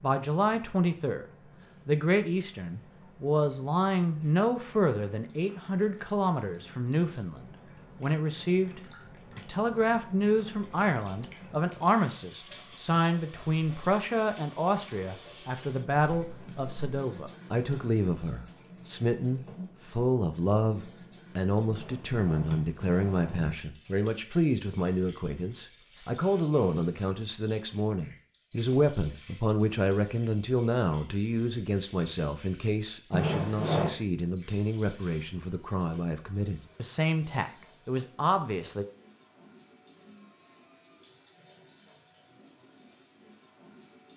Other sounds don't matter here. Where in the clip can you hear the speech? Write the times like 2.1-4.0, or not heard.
0.0-38.9.